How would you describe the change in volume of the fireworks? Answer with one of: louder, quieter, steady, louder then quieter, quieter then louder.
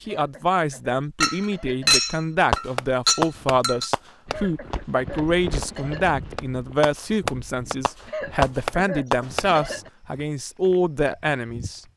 quieter then louder.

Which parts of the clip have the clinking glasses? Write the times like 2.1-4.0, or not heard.
1.2-3.9.